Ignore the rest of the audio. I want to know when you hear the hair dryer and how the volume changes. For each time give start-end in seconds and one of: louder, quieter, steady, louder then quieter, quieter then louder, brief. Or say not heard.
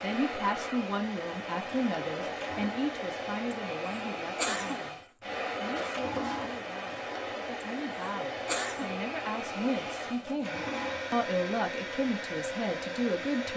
0.0-13.5 steady.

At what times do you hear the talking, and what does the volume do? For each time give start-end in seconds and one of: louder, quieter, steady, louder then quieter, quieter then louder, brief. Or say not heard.
0.0-13.5 quieter then louder.